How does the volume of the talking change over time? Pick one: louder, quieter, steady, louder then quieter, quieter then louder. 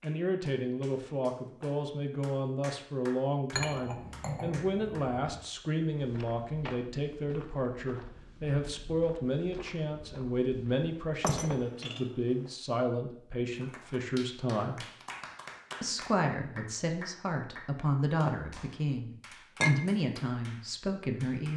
steady.